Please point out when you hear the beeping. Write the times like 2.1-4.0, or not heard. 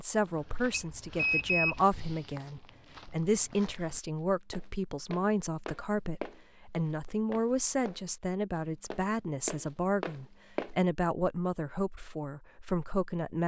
0.7-1.8.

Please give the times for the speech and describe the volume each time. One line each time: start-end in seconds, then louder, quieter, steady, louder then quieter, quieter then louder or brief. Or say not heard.
0.0-13.4 steady.